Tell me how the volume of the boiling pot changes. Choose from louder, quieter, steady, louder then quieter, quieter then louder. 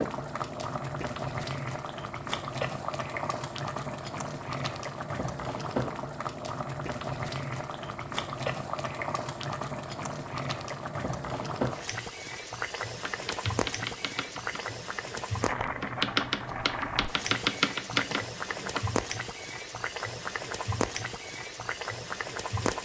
steady.